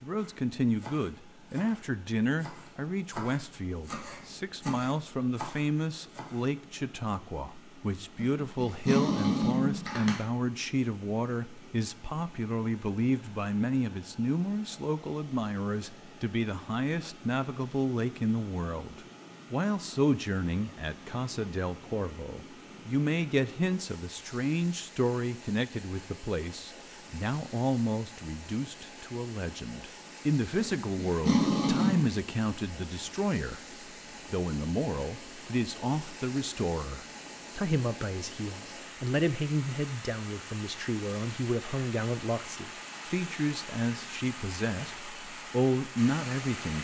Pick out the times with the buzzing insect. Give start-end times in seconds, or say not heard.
not heard.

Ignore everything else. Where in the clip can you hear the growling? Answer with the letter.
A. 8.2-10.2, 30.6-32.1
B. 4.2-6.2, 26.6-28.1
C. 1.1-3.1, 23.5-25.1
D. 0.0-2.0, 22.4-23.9
A.